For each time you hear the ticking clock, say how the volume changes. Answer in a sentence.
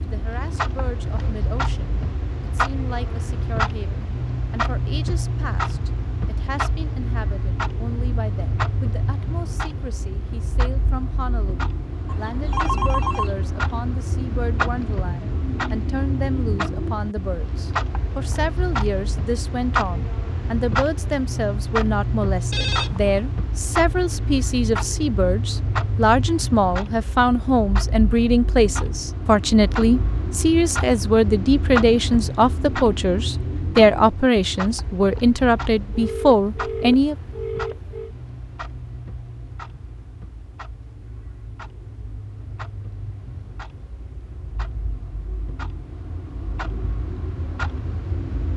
The ticking clock can be heard from 0.0 to 48.5 s, getting quieter.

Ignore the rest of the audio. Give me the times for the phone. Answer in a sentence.
You can hear the phone from 12.1 to 13.3 s, from 22.5 to 23.1 s and from 35.9 to 38.1 s.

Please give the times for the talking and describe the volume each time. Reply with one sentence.
The talking can be heard from 0.0 to 37.1 s, getting louder.